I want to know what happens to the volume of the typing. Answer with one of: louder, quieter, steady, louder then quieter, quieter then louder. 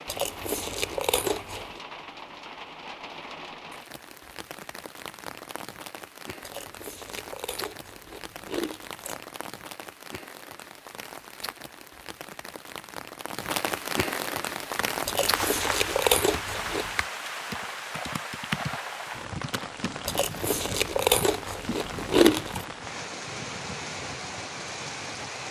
louder then quieter.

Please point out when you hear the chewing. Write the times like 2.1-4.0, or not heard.
0.1-1.8, 6.4-9.2, 15.1-17.0, 20.1-22.6.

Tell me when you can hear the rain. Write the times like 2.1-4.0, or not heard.
0.0-25.4.